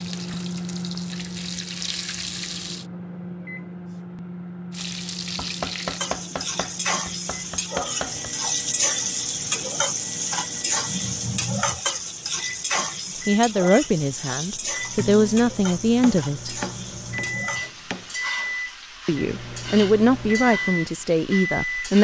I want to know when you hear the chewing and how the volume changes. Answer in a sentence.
You can't hear the chewing here.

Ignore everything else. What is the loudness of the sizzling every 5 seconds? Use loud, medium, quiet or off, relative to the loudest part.
medium, loud, loud, medium, medium.